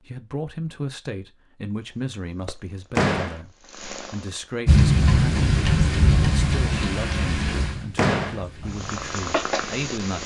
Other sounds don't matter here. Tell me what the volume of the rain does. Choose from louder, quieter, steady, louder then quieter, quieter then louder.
quieter.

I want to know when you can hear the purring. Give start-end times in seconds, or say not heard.
1.9-4.6, 8.7-10.2.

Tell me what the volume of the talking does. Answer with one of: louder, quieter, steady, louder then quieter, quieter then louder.
steady.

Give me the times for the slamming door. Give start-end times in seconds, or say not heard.
3.0-3.4, 8.0-8.4.